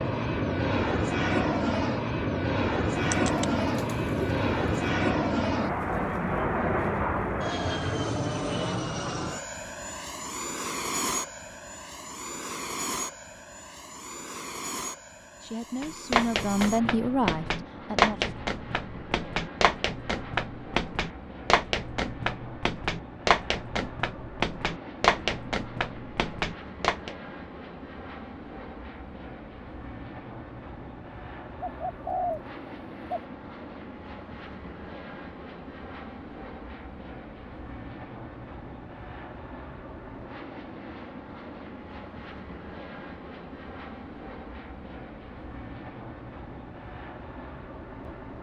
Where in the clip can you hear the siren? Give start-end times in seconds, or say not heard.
not heard.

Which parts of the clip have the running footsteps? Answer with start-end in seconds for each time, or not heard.
15.8-27.1.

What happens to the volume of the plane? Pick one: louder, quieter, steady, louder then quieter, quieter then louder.
quieter.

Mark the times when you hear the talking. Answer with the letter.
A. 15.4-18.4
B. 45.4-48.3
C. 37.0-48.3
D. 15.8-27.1
A.